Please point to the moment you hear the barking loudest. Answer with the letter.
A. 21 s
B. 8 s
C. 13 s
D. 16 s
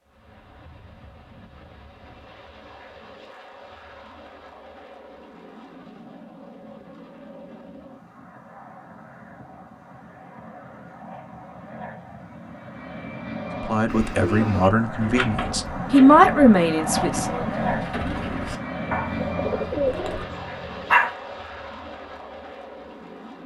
A.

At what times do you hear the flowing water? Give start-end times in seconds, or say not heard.
not heard.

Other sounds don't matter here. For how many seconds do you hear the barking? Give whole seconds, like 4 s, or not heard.
2 s.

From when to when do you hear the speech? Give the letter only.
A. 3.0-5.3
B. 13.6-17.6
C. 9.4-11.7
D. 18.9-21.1
B.